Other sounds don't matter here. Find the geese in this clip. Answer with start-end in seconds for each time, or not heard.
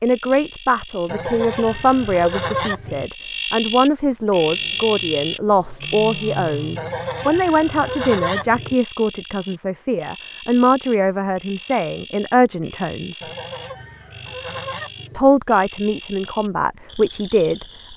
1.1-3.1, 6.8-8.8, 13.2-15.2.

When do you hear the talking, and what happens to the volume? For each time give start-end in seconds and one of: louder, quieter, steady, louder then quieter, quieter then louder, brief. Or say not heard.
0.0-13.2 steady
15.1-17.9 brief.